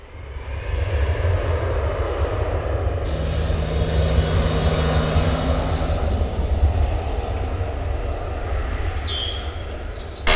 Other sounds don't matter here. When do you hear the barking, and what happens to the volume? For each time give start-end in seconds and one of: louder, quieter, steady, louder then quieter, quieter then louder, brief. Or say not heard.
not heard.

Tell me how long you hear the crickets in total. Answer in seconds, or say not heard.
7 s.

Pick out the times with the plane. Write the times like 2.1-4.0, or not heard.
0.0-10.3.